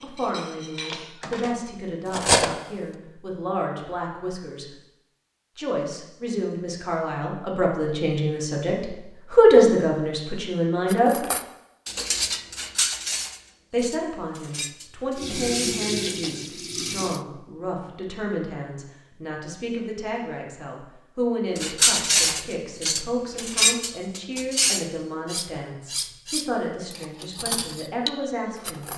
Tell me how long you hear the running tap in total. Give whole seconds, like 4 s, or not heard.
2 s.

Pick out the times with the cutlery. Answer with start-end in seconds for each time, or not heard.
0.0-2.5, 10.8-15.8, 21.6-28.9.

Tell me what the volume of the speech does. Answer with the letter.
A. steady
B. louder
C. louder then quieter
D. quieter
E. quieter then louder
C.